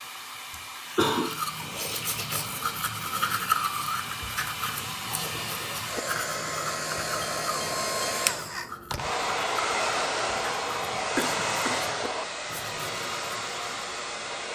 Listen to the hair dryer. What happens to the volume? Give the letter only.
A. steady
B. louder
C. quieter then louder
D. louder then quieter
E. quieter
B.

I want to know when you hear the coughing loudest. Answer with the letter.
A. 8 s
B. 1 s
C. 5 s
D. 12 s
B.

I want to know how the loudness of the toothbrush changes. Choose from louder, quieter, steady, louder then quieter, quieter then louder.
quieter.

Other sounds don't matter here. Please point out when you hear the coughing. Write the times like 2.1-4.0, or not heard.
0.5-1.2, 11.2-11.8.